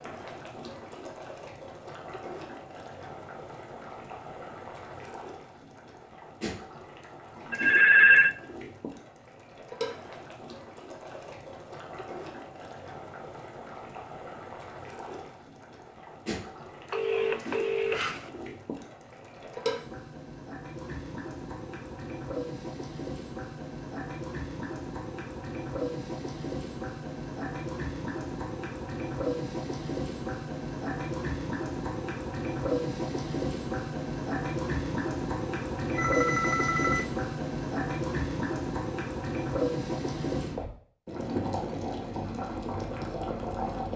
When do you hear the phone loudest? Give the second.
8 s.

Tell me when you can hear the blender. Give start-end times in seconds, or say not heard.
not heard.